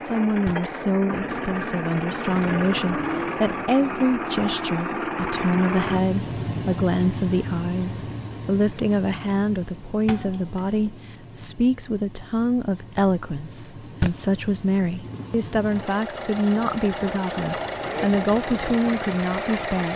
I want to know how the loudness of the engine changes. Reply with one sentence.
The loudness of the engine goes down, then up.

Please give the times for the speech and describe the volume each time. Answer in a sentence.
You can hear the speech from 0.0 to 19.9 s, at a steady volume.